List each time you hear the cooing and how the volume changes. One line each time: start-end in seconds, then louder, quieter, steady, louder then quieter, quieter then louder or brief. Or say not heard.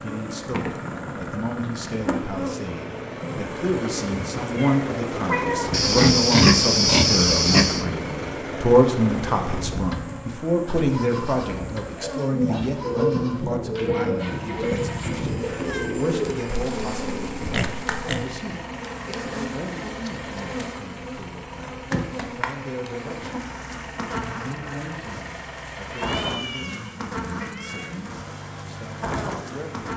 11.9-17.6 quieter.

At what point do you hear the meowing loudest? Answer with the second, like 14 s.
5 s.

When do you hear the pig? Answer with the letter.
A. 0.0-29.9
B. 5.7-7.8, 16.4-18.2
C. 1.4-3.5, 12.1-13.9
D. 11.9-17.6
B.